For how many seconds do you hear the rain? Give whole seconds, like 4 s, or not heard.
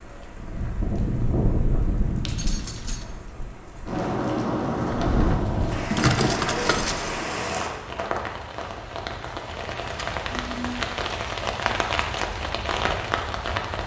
14 s.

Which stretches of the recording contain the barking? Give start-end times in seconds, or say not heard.
not heard.